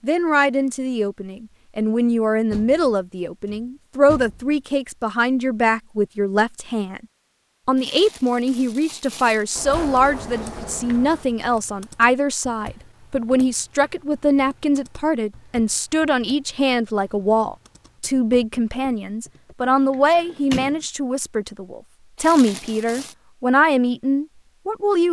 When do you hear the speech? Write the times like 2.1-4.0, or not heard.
0.0-7.0, 7.7-25.0.